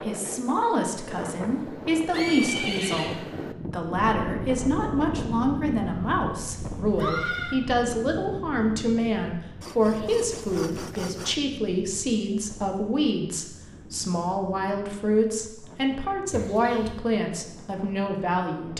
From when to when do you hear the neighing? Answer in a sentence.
You can hear the neighing from 2.1 to 3.1 s, from 6.9 to 7.5 s and from 16.3 to 17.0 s.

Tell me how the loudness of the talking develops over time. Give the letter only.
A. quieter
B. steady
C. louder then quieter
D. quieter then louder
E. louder
B.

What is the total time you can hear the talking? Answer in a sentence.
You can hear the talking for 19 seconds altogether.